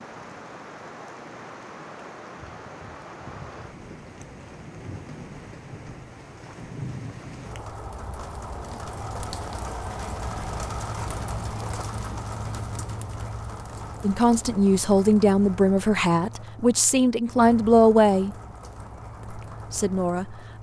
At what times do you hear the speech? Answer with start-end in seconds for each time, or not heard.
14.0-18.4, 19.3-20.5.